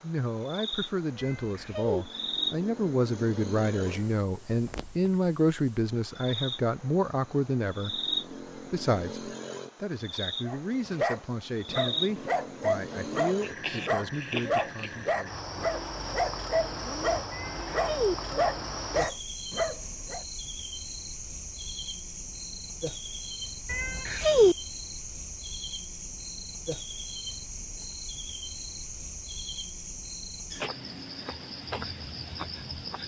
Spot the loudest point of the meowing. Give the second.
24 s.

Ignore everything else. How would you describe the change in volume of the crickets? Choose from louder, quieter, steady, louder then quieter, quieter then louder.
steady.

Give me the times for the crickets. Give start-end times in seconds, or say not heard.
0.0-33.0.